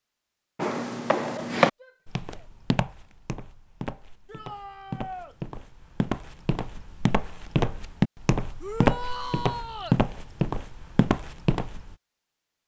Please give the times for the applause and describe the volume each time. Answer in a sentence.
The applause can't be heard in this clip.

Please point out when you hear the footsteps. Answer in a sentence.
The footsteps can be heard from 0.6 to 11.9 s.